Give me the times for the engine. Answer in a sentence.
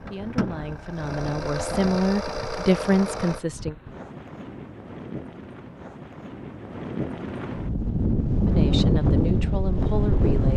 The engine can be heard from 0.0 to 3.4 s.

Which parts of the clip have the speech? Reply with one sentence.
The speech can be heard from 0.1 to 3.8 s and from 8.4 to 10.5 s.